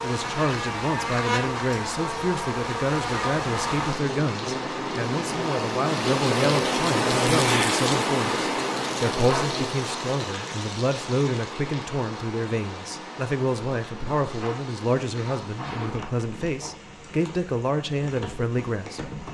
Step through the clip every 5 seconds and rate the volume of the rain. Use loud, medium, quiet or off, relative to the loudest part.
medium, loud, medium, quiet.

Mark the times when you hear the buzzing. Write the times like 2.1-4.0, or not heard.
0.0-9.8.